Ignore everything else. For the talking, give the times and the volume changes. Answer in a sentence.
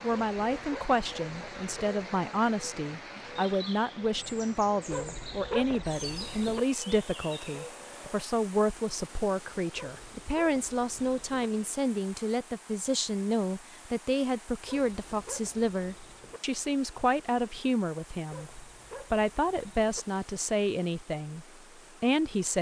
You can hear the talking from 0.0 to 22.5 s, at a steady volume.